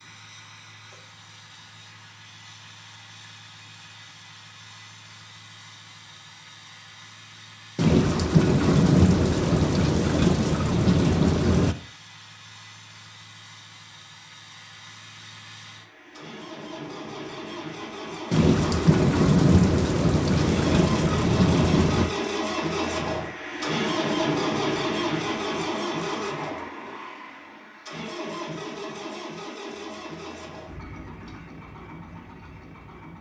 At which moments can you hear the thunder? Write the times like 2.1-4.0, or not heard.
7.8-11.8, 18.3-22.1.